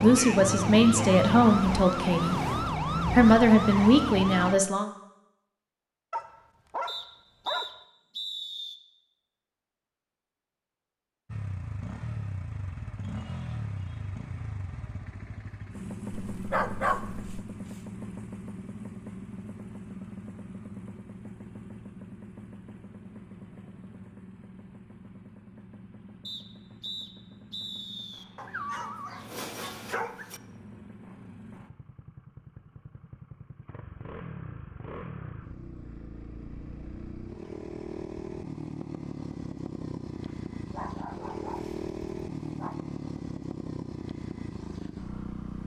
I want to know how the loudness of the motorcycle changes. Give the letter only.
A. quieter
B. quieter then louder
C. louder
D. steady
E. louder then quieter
B.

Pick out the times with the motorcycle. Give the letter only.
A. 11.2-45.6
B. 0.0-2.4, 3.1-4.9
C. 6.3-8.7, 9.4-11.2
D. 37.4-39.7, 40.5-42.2
A.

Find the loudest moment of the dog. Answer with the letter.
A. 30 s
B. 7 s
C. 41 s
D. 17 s
D.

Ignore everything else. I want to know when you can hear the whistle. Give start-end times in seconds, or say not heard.
6.8-8.8, 26.2-28.2.